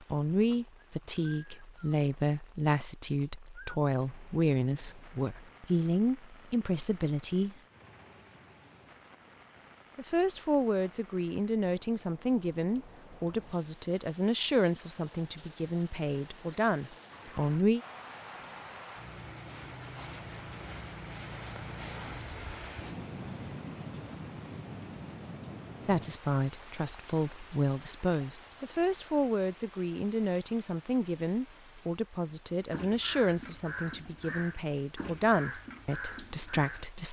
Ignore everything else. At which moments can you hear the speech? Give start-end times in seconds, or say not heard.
0.1-7.5, 9.9-17.8, 25.8-37.0.